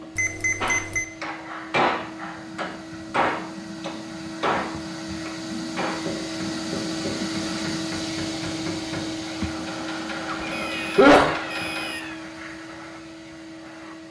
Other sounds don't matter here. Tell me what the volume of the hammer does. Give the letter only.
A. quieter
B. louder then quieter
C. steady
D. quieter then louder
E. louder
A.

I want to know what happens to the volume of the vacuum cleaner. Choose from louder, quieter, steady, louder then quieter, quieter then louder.
louder then quieter.